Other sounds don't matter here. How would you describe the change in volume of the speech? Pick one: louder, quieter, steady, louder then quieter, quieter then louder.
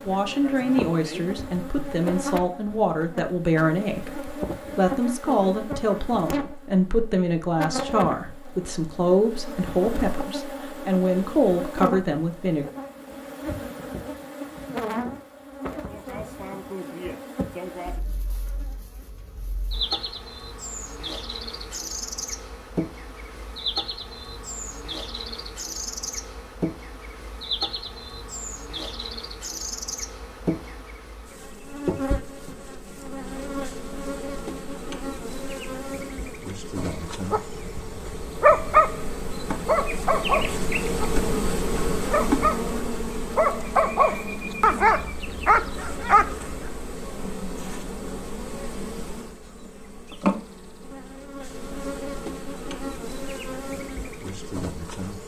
steady.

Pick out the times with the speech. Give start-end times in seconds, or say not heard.
0.1-12.7.